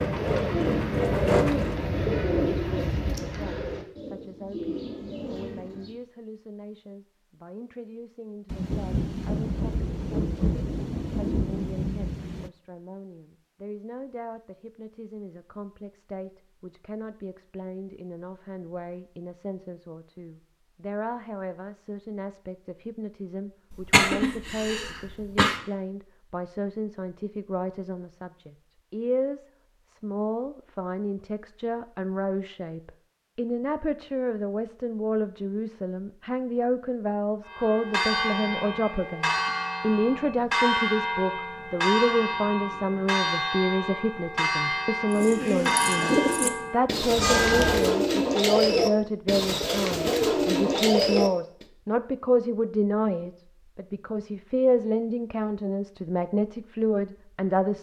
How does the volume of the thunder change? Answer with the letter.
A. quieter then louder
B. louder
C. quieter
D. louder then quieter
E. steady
E.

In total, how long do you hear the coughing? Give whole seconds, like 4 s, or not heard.
2 s.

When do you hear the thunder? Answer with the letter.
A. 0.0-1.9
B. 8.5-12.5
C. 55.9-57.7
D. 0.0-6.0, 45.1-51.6
B.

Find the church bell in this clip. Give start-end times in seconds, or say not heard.
37.5-47.9.